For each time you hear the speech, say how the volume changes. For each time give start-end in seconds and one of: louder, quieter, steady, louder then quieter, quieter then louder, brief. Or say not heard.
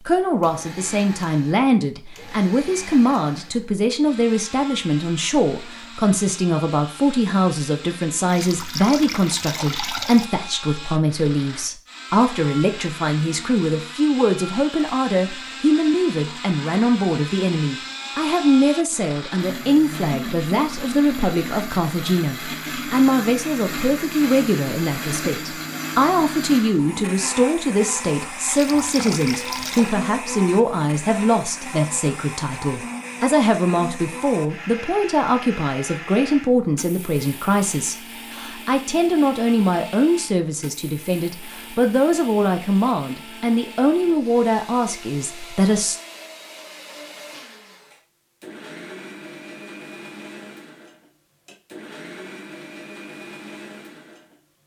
0.1-46.0 steady.